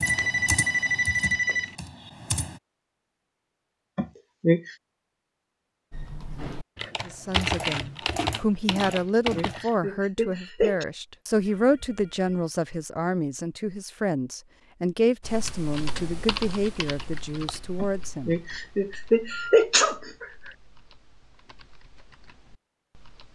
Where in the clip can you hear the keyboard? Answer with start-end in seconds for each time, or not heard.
0.0-2.6, 5.9-9.8, 15.2-23.3.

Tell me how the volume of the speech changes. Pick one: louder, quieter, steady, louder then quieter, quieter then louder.
steady.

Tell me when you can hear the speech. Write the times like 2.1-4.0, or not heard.
7.0-18.4.